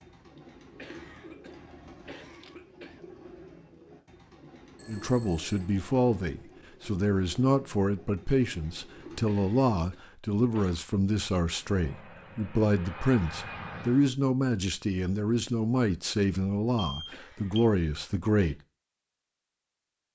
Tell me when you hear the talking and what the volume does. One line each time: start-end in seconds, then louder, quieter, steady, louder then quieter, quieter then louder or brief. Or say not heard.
4.8-18.6 steady.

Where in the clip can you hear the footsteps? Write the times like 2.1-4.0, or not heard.
not heard.